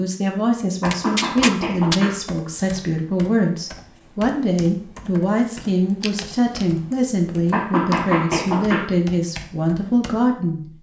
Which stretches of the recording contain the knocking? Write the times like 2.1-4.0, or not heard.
0.8-2.8, 7.5-8.9.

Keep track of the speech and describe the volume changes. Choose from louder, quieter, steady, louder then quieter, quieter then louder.
steady.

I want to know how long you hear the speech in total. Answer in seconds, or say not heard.
11 s.